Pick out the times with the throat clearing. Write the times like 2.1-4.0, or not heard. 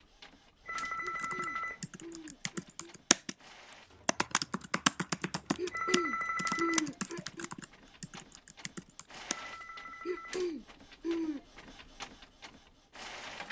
1.0-3.0, 5.5-7.5, 10.1-11.4.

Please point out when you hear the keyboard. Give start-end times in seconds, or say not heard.
0.9-3.4, 4.0-9.3.